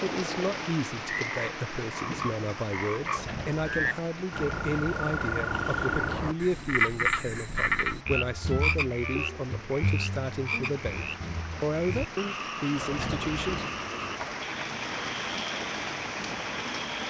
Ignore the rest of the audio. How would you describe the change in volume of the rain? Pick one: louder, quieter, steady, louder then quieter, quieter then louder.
quieter then louder.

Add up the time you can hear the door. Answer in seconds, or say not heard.
3 s.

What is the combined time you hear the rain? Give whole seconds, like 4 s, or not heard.
17 s.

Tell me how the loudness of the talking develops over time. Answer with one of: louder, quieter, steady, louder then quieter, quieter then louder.
steady.